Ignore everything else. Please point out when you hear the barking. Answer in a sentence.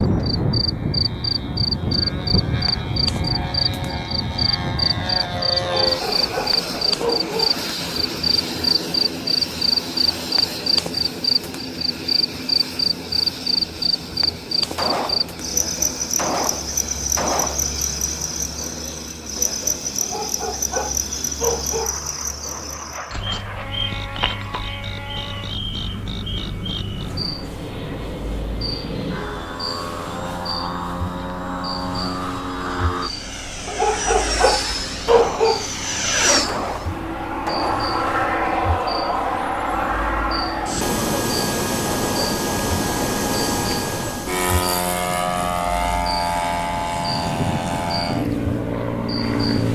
The barking can be heard from 5.6 to 7.6 s, from 20.0 to 22.0 s and from 33.6 to 35.6 s.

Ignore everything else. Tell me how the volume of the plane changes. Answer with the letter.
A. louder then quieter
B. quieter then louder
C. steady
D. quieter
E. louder
B.